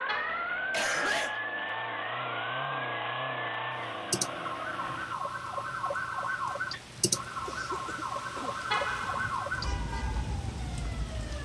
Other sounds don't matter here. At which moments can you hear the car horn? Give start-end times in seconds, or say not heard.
0.1-0.8, 8.7-9.3.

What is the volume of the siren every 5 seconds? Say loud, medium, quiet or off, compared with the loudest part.
loud, loud, medium.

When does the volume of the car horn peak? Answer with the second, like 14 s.
9 s.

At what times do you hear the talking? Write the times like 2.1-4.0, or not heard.
not heard.